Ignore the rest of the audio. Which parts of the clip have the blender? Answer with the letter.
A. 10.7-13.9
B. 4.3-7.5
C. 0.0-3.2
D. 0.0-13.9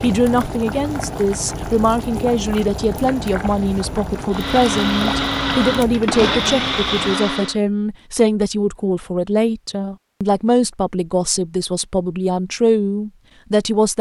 B.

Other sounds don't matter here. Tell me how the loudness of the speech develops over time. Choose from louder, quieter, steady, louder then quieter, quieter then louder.
steady.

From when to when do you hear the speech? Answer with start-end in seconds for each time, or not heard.
0.0-13.9.